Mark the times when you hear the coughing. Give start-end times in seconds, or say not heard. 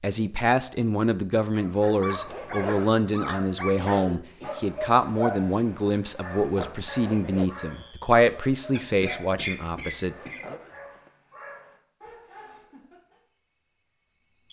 3.8-4.6, 8.8-10.4.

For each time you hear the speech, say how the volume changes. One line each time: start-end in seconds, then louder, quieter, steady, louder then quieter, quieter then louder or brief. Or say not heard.
0.0-10.6 steady.